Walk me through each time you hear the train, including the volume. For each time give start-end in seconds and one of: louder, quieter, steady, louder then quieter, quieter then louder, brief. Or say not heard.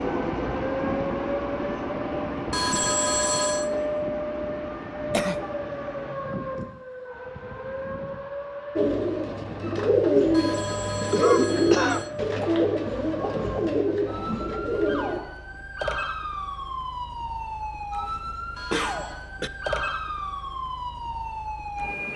0.0-6.2 quieter.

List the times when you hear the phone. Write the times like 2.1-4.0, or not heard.
2.5-3.7, 10.3-12.1, 18.6-19.2.